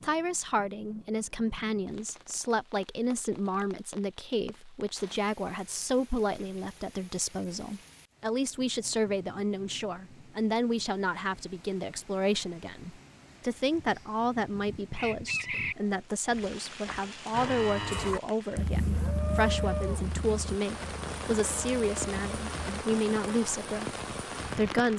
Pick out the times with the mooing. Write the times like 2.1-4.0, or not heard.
17.3-22.9.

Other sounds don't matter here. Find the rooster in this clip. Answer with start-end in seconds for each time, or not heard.
13.8-15.8.